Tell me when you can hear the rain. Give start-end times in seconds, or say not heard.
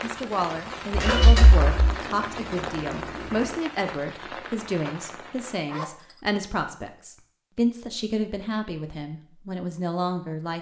0.0-5.6.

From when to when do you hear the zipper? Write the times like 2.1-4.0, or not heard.
1.6-3.6, 5.7-6.2.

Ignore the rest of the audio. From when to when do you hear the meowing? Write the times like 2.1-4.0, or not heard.
0.9-1.9.